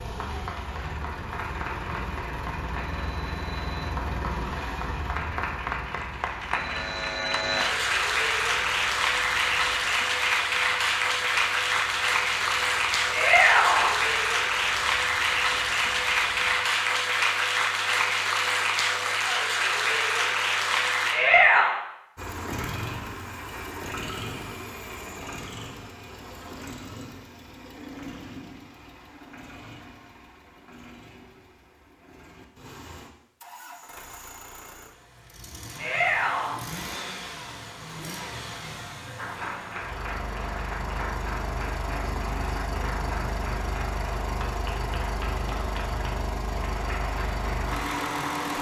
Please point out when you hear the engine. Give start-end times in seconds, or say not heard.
0.0-16.6, 22.1-48.5.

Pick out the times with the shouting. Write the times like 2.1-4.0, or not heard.
13.1-13.9, 21.1-21.8, 35.8-36.5.